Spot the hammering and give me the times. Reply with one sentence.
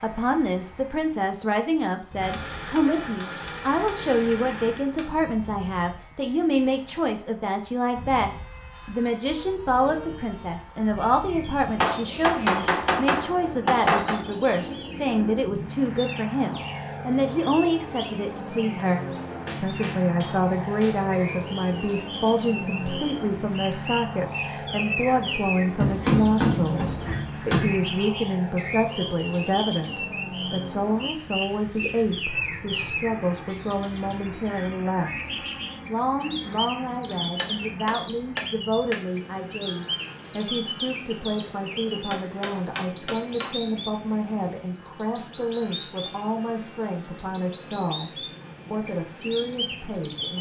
You can hear the hammering from 2.2 to 5.1 s, from 11.8 to 14.2 s, from 19.4 to 21.4 s, from 25.8 to 27.8 s, from 37.4 to 39.0 s and from 42.1 to 43.5 s.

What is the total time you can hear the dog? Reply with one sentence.
The dog can't be heard in this clip.